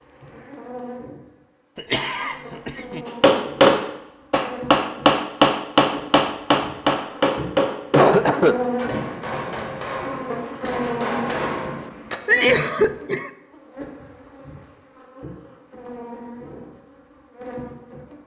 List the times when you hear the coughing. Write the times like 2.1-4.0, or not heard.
1.8-3.0, 7.9-8.7, 12.2-13.3.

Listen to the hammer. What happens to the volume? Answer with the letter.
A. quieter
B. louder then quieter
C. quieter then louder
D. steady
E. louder
A.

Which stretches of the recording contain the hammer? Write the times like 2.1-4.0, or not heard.
3.0-12.2.